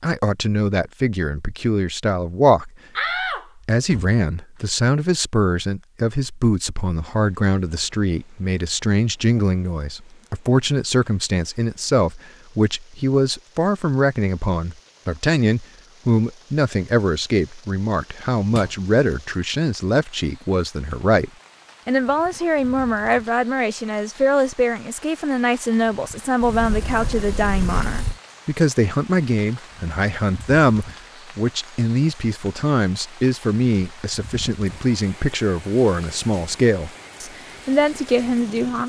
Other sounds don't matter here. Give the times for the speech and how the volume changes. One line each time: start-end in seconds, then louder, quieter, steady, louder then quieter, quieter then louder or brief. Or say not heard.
0.0-2.7 brief
3.6-38.8 steady.